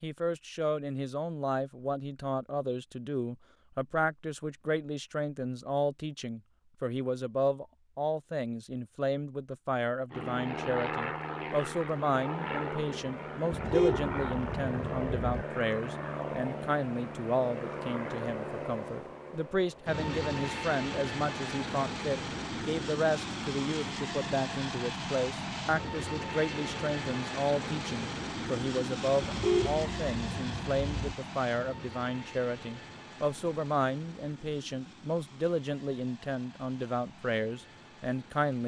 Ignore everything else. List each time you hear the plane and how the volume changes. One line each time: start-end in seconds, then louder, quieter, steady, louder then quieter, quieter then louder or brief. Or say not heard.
10.1-38.6 quieter.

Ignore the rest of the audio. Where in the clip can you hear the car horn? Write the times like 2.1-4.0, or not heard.
13.5-15.4, 29.2-31.1.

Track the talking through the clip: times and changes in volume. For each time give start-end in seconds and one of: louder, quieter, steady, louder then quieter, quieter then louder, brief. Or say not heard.
0.0-38.6 steady.